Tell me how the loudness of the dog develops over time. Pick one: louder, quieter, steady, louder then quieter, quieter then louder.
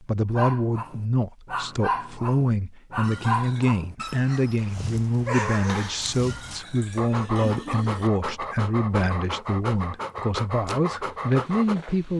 steady.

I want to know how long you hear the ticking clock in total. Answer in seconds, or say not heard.
not heard.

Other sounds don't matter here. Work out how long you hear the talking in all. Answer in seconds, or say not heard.
12 s.